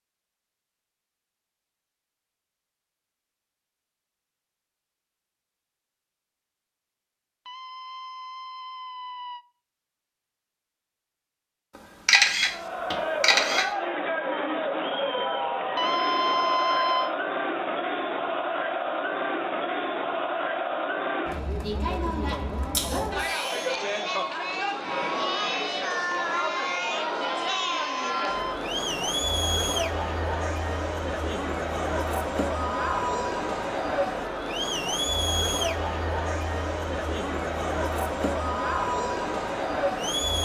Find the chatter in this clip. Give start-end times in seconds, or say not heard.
12.4-40.4.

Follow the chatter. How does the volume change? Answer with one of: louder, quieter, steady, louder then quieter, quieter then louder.
steady.